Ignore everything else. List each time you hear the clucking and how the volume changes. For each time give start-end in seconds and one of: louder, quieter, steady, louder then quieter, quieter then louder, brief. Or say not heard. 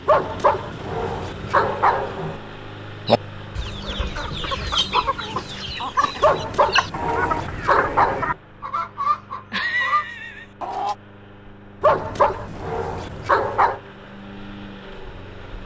3.0-10.9 steady.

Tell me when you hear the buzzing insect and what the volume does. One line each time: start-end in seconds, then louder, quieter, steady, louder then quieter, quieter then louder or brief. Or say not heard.
not heard.